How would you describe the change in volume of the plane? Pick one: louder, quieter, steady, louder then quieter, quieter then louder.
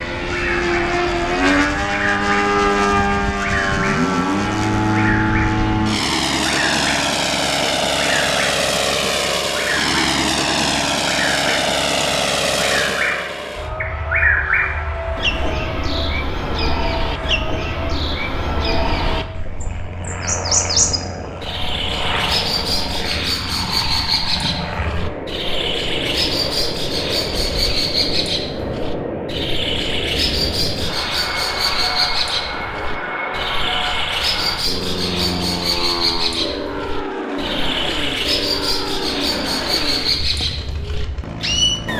quieter.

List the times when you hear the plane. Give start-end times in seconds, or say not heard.
0.0-41.9.